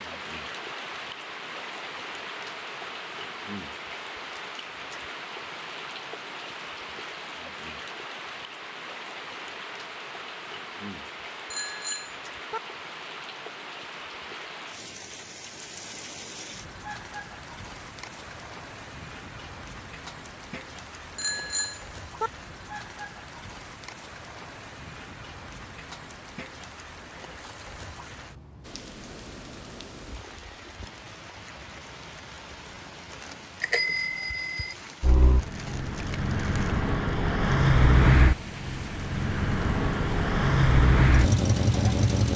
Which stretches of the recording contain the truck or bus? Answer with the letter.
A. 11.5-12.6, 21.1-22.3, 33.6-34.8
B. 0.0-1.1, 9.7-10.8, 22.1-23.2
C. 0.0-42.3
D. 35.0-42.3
D.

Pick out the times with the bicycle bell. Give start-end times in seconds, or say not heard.
11.5-12.6, 21.1-22.3, 33.6-34.8.